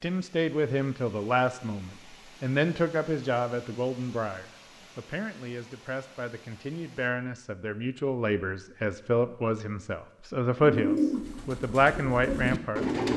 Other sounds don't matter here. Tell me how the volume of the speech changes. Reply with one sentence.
The loudness of the speech goes down, then up.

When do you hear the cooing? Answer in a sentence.
You can hear the cooing from 10.6 to 13.1 s.